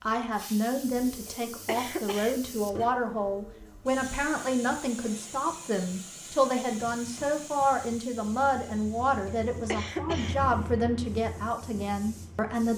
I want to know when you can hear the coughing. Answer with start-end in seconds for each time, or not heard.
1.2-2.4, 9.2-10.3.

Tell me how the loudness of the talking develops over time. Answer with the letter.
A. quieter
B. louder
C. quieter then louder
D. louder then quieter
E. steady
E.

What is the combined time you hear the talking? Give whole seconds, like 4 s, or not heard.
13 s.